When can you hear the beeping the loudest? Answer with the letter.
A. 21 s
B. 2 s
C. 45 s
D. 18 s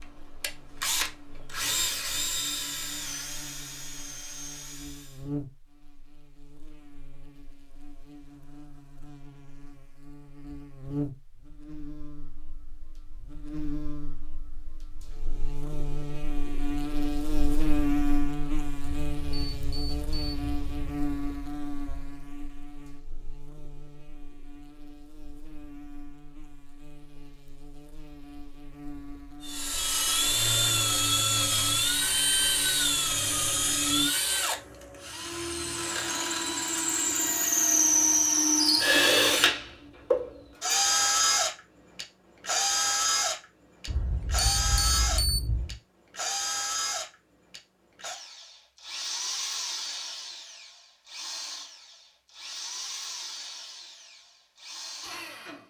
C.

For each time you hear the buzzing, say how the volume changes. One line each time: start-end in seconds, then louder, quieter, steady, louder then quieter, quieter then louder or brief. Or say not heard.
0.0-34.1 louder then quieter.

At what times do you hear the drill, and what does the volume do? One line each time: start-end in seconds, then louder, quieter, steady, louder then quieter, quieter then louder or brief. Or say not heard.
0.4-5.2 quieter
29.4-55.6 quieter.